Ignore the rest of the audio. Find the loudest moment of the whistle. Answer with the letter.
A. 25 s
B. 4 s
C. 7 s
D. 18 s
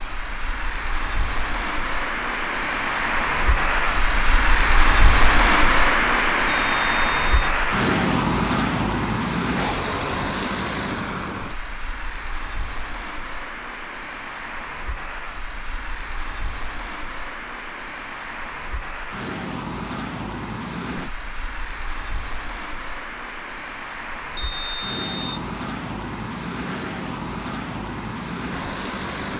A.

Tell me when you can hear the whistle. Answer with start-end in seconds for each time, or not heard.
6.5-7.5, 24.4-25.4.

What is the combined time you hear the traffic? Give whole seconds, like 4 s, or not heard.
29 s.